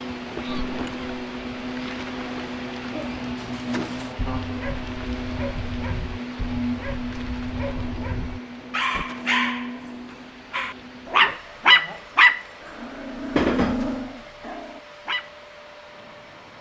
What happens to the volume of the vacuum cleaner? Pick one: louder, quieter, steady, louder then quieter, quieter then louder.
quieter.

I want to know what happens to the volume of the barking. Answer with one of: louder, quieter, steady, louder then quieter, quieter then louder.
louder then quieter.